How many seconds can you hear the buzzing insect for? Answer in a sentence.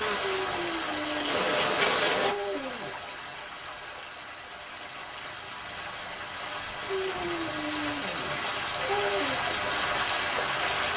The buzzing insect can be heard for 2 seconds in total.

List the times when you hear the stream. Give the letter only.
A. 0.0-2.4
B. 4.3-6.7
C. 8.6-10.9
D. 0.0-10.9
D.